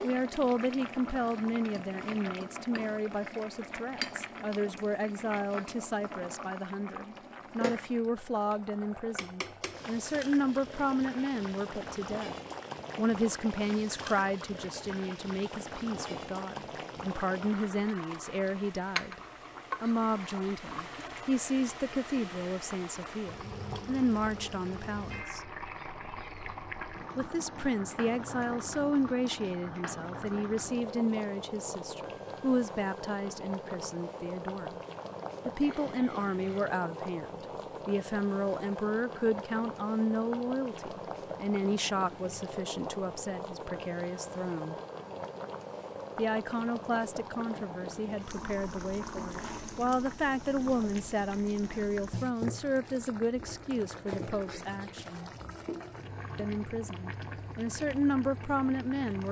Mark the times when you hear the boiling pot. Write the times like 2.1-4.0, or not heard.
0.0-59.2.